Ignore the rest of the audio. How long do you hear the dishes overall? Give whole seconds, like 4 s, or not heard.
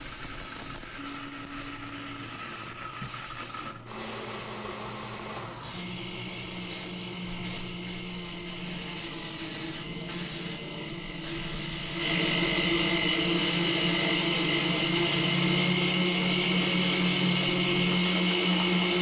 not heard.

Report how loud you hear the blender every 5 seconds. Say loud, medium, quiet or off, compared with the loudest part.
quiet, quiet, loud, loud.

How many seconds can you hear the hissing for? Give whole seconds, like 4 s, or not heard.
19 s.